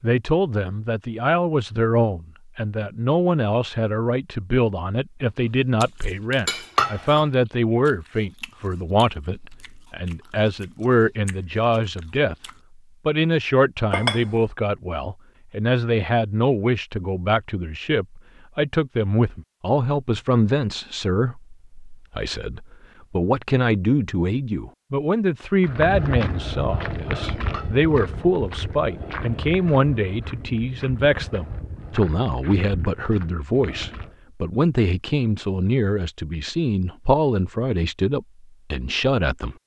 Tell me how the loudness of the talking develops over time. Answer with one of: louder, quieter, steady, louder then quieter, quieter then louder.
steady.